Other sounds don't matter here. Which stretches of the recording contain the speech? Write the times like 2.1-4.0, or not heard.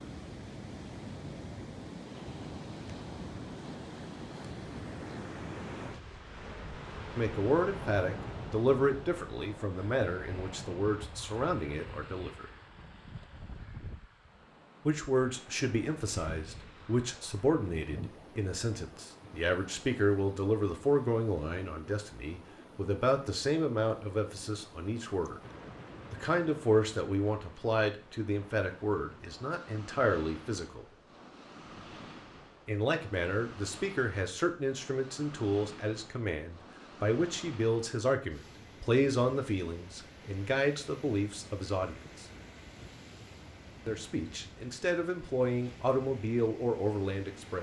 7.2-12.4, 14.8-25.4, 26.1-30.9, 32.6-42.2, 43.9-47.5.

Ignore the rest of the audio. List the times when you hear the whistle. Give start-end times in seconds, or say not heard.
not heard.